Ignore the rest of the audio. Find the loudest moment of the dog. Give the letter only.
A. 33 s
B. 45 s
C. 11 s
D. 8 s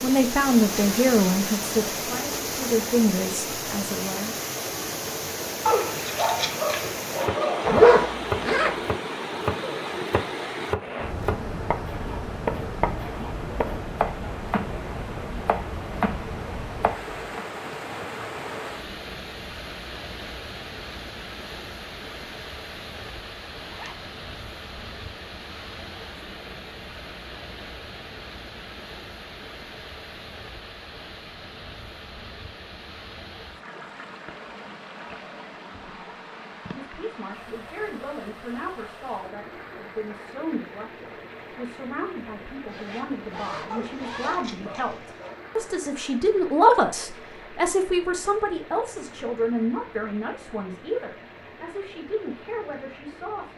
D.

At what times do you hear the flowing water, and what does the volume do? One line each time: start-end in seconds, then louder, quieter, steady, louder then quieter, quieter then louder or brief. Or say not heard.
0.0-53.5 quieter.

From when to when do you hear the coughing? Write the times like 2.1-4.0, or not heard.
not heard.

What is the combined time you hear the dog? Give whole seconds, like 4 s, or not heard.
4 s.